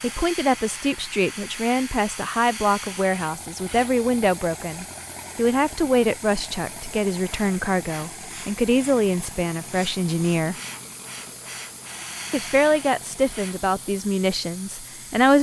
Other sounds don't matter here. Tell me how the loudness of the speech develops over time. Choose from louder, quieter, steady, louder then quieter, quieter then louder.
steady.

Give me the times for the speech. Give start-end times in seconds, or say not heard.
0.0-10.6, 12.3-15.3.